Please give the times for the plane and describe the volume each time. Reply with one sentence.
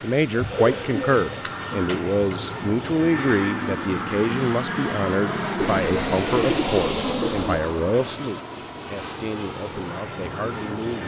The plane can be heard from 0.0 to 11.0 s, getting louder then quieter.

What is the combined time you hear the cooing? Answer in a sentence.
You can hear the cooing for 4 seconds altogether.